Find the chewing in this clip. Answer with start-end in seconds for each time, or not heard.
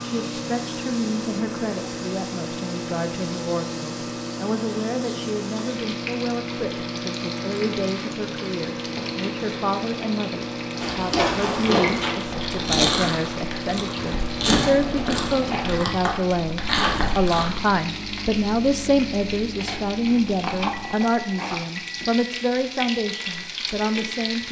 10.8-17.6.